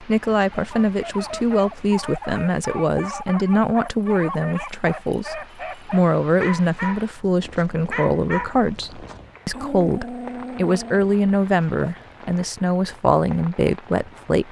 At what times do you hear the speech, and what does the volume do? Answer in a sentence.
You can hear the speech from 0.0 to 14.4 s, at a steady volume.